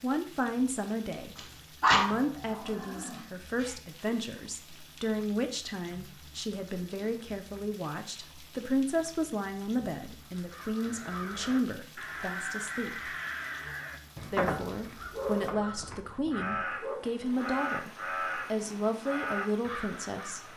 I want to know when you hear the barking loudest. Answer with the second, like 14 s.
2 s.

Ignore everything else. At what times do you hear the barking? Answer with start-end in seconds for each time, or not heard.
1.4-3.8, 15.1-16.9.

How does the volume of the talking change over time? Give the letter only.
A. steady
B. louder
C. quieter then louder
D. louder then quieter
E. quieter
A.